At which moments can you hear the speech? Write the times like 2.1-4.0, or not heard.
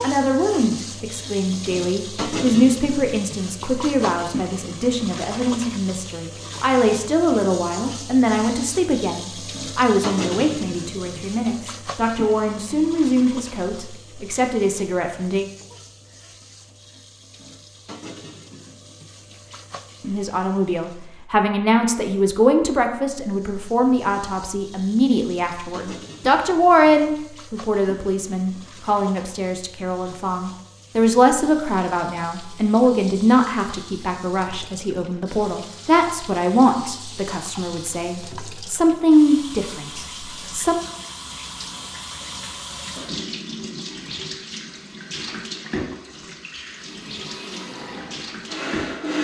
0.0-15.4, 20.1-40.8.